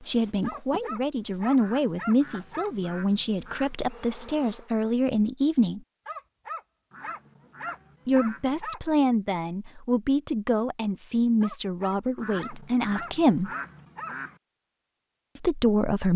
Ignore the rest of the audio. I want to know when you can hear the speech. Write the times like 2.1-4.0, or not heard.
0.0-5.8, 8.1-13.5, 15.3-16.1.